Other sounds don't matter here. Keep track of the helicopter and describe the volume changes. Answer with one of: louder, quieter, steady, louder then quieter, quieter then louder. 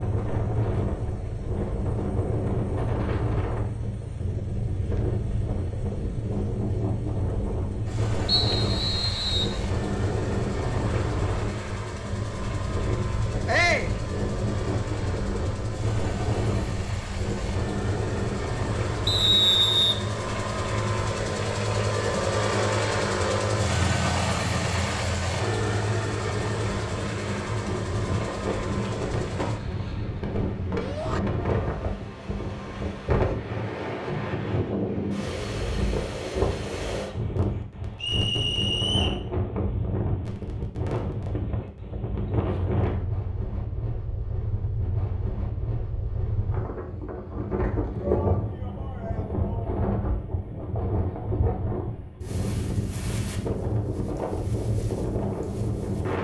louder.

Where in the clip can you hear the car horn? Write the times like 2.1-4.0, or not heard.
not heard.